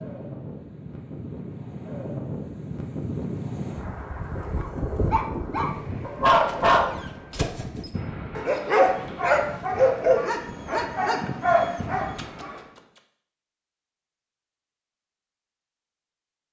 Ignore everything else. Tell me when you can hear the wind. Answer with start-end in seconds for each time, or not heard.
0.0-12.8.